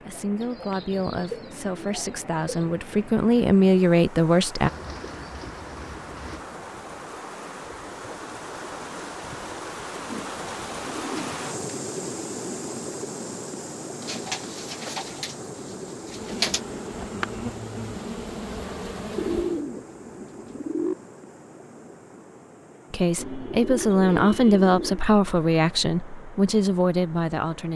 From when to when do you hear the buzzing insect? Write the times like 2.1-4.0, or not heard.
16.0-19.6.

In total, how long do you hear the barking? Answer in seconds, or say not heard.
not heard.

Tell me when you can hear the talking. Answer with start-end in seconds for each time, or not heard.
0.1-4.7, 22.9-27.7.